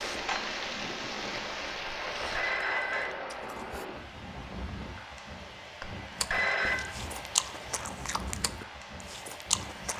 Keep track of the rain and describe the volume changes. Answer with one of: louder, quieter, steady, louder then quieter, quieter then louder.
quieter.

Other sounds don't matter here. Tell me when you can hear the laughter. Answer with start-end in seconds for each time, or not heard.
not heard.